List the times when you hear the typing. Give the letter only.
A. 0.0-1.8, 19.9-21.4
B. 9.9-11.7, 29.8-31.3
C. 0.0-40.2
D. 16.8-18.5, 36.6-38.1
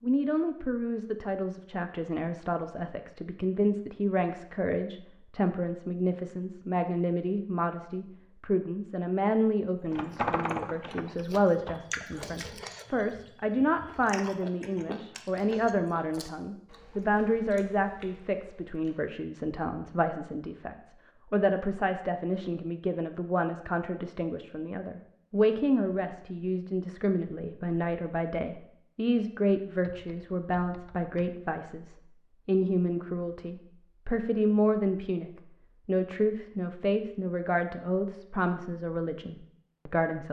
B.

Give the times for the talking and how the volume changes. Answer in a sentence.
You can hear the talking from 0.0 to 40.2 s, at a steady volume.